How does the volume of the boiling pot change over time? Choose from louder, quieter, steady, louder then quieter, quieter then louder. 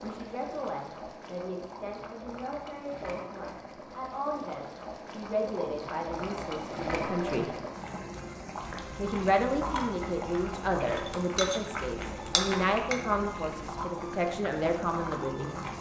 louder.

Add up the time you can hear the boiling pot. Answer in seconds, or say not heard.
16 s.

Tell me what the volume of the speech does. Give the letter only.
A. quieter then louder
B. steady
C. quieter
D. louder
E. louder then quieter
D.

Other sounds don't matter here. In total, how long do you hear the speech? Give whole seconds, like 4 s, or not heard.
14 s.